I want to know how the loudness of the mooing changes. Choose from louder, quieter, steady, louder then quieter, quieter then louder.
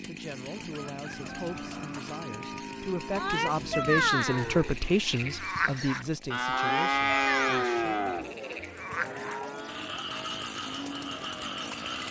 louder then quieter.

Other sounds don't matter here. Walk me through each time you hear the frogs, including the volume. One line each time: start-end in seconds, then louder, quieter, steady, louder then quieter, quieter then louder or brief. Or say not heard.
3.1-12.0 quieter.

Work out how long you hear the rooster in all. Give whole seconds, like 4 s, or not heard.
2 s.